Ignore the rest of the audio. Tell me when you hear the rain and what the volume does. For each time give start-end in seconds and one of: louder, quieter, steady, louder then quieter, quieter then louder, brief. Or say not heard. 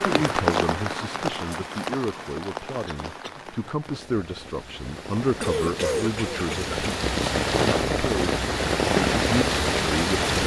0.0-10.4 quieter then louder.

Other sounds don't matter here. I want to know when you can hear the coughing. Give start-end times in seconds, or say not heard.
2.9-3.5, 5.4-6.8.